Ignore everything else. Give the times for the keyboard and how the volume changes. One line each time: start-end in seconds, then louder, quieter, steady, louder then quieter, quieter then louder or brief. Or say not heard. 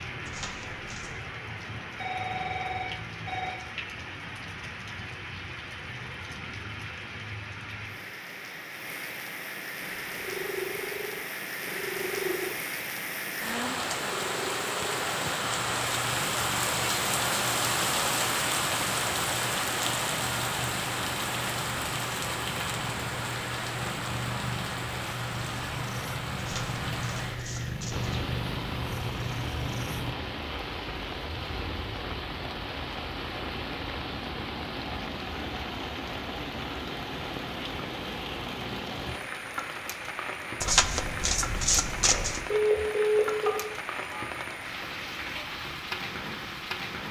not heard.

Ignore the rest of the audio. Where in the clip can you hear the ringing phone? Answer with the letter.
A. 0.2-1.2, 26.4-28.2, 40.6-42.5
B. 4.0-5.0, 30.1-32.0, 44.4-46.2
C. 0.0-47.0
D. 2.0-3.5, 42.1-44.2
D.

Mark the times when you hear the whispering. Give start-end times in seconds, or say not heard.
not heard.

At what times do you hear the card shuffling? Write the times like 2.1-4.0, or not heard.
0.2-1.2, 26.4-28.2, 40.6-42.5.